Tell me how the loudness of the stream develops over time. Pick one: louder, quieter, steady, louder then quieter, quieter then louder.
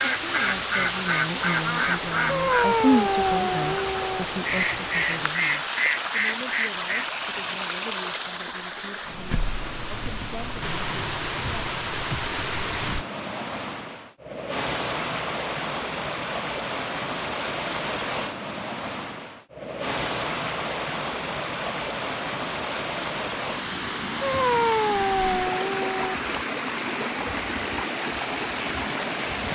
steady.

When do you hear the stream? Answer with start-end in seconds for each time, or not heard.
0.0-29.5.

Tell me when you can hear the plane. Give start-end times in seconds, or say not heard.
not heard.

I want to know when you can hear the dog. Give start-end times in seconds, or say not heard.
2.2-4.2, 24.2-26.1.